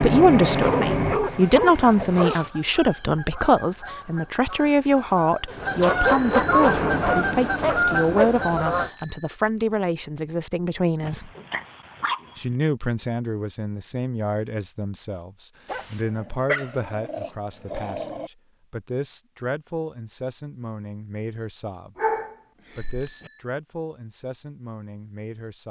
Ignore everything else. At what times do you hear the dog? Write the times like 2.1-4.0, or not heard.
0.5-2.5, 5.5-8.3, 11.0-12.6, 15.7-18.3, 21.9-23.3.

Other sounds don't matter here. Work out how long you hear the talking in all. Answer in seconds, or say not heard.
24 s.